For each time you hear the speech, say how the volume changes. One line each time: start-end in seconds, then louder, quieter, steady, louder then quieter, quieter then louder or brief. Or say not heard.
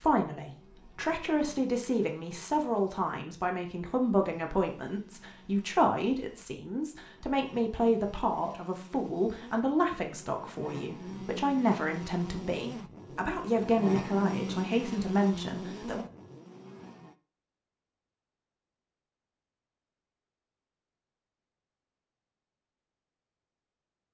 0.0-16.1 steady.